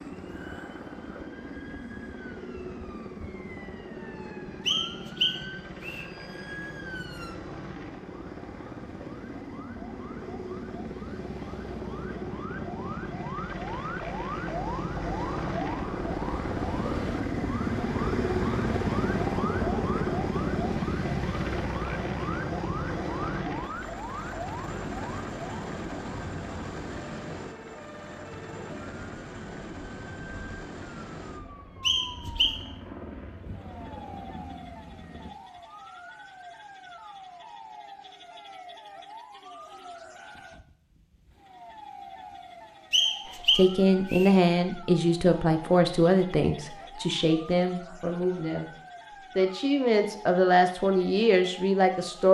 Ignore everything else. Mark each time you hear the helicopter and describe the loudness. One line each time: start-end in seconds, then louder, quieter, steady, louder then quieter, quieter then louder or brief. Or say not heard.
0.0-35.3 louder then quieter.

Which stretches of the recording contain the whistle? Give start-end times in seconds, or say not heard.
4.7-6.0, 31.8-32.6, 42.9-44.4.